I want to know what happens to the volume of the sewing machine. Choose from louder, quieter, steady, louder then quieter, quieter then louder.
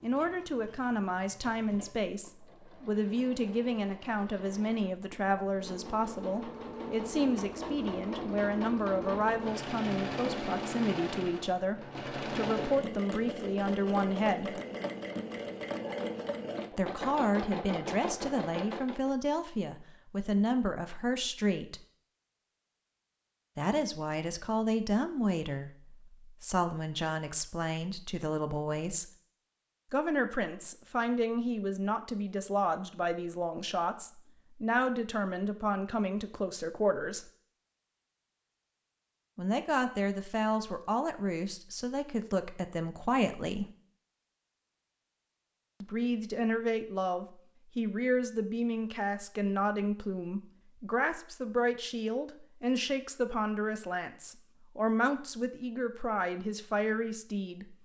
louder.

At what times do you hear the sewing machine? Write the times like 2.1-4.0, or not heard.
0.0-19.1.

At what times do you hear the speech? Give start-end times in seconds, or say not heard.
0.0-14.6, 16.8-21.8, 23.6-29.1, 29.9-37.2, 39.4-43.6, 45.8-57.8.